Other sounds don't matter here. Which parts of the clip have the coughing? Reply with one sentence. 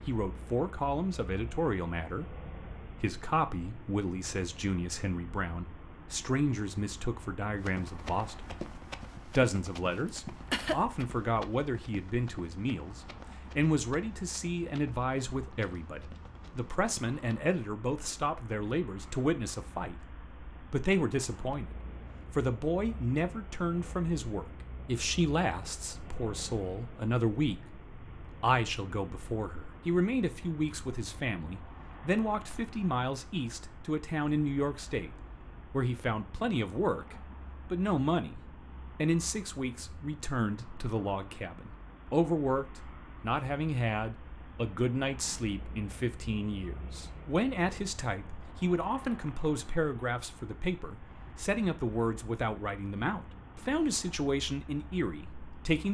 You can hear the coughing from 10.1 to 11.1 s.